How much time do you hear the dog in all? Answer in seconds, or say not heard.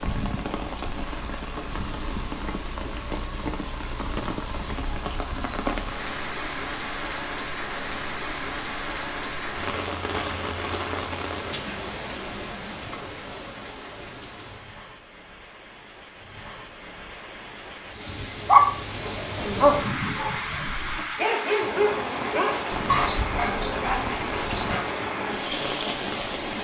6 s.